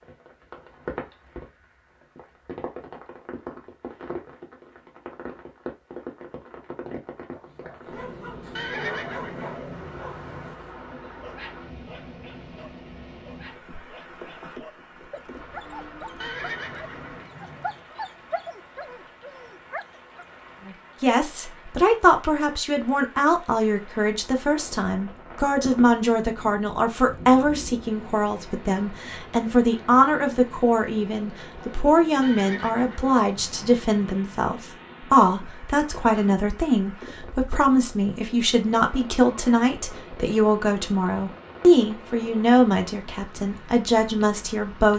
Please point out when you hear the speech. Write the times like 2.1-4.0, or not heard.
20.6-44.9.